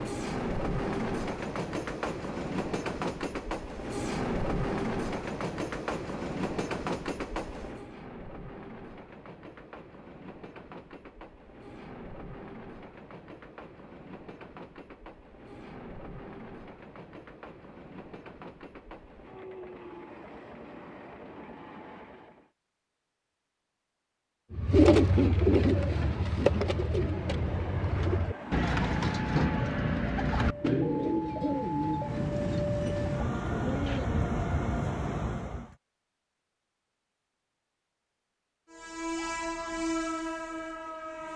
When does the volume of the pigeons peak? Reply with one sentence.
The volume of the pigeons peaks at 25 seconds.